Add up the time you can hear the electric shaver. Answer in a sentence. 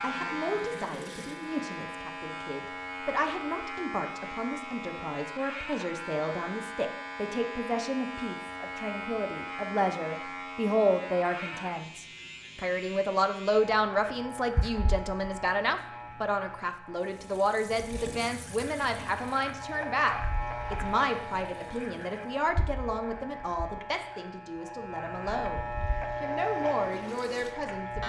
You can hear the electric shaver for 28 seconds altogether.